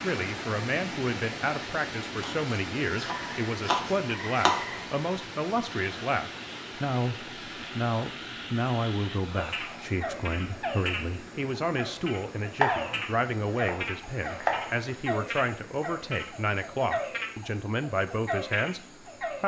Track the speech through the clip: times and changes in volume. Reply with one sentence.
You can hear the speech from 0.0 to 19.4 s, at a steady volume.